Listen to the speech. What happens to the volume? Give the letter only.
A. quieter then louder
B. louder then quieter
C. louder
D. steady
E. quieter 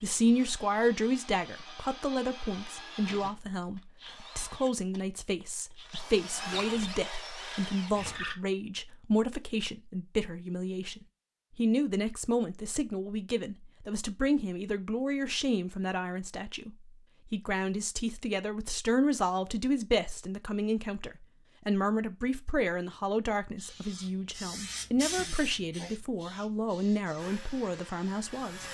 D.